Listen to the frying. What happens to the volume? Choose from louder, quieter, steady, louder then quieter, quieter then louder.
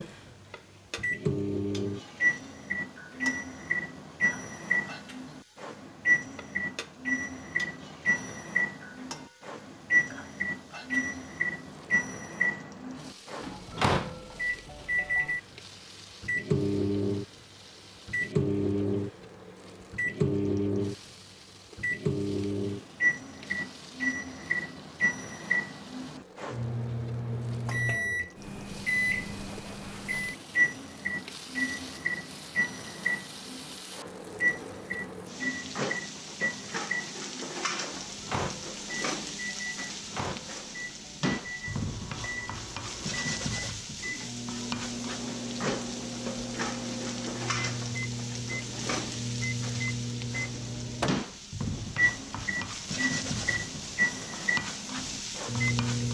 louder.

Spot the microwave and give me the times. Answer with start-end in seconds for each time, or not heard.
0.0-56.0.